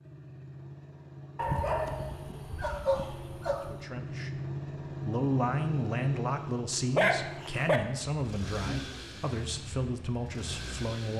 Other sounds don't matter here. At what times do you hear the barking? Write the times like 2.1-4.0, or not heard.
1.4-3.8, 7.0-7.8.